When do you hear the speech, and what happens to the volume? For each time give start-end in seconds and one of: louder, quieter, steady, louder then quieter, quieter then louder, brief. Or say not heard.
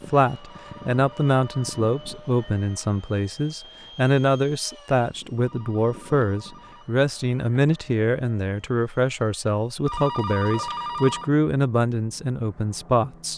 0.1-13.3 steady.